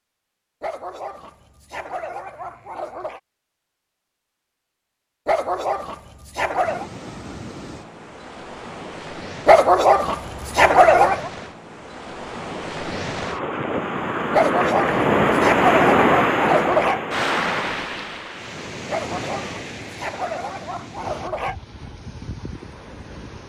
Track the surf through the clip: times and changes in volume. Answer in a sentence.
You can hear the surf from 6.6 to 23.4 s, getting louder then quieter.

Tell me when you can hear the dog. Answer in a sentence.
You can hear the dog from 0.6 to 3.2 s, from 5.2 to 6.9 s, from 9.4 to 11.3 s, from 14.3 to 17.0 s and from 18.9 to 21.6 s.